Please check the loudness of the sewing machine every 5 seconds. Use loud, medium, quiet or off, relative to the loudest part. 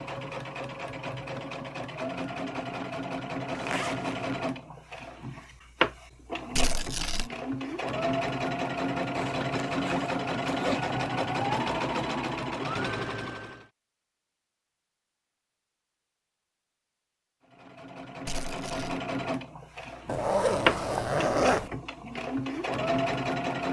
medium, loud, loud, medium, loud.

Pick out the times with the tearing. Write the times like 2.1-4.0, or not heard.
6.5-7.3, 18.2-19.0.